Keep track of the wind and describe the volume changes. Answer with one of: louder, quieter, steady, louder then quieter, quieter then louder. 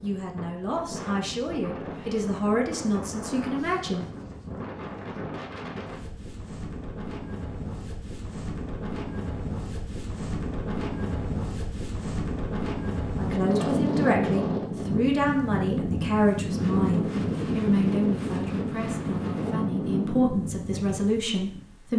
louder.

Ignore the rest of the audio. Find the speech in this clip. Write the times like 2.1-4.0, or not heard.
0.0-4.0, 13.2-21.9.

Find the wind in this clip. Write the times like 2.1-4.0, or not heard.
0.0-21.9.